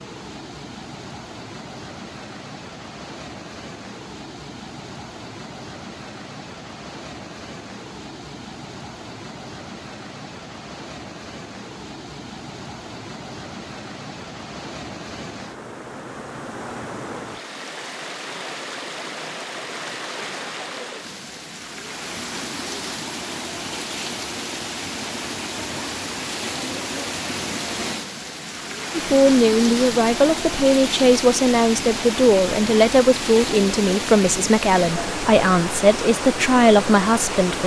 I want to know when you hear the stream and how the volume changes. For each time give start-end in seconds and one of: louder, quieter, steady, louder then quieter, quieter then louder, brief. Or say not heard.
0.0-37.6 louder.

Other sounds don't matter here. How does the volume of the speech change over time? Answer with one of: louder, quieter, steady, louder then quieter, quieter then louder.
steady.